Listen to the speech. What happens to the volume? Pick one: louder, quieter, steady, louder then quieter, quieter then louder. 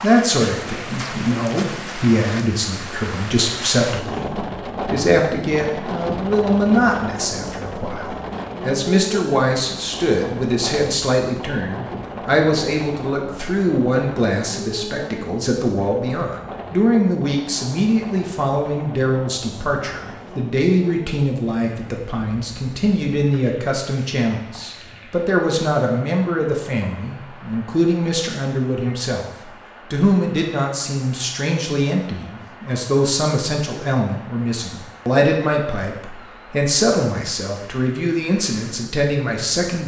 steady.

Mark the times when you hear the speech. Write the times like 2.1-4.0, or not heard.
0.0-39.8.